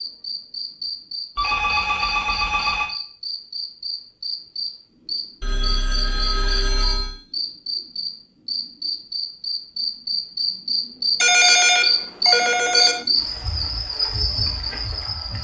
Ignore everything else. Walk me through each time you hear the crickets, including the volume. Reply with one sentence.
The crickets can be heard from 0.0 to 15.3 s, getting louder.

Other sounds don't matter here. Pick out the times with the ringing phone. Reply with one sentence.
You can hear the ringing phone from 1.4 to 2.9 s, from 5.4 to 7.2 s and from 11.2 to 13.0 s.